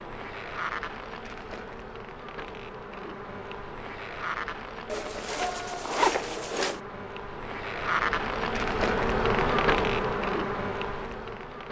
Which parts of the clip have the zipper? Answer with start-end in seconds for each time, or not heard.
4.8-6.8.